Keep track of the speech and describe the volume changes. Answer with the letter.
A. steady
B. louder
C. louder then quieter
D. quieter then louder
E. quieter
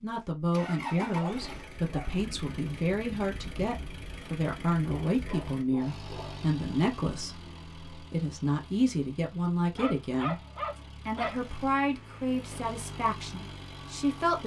A.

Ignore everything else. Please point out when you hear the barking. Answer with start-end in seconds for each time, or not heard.
1.1-2.2, 4.8-6.5, 9.8-11.4.